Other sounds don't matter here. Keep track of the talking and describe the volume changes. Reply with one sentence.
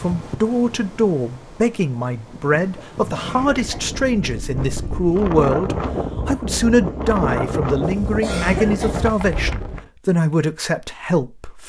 The loudness of the talking stays about the same.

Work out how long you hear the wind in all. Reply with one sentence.
The wind can be heard for 10 seconds in total.